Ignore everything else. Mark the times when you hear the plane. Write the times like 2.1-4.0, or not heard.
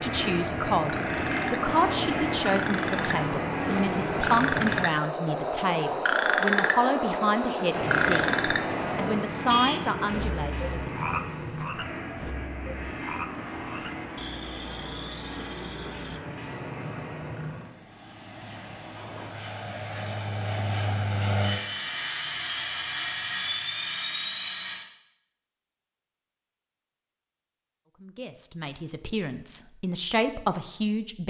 0.0-4.9, 7.7-24.8.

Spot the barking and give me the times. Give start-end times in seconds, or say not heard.
not heard.